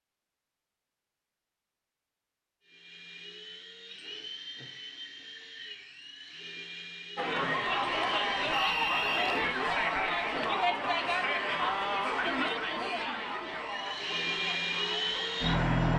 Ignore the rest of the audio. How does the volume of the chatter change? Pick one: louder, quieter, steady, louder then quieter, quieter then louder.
quieter.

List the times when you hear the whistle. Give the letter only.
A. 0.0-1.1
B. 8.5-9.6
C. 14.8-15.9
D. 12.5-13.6
B.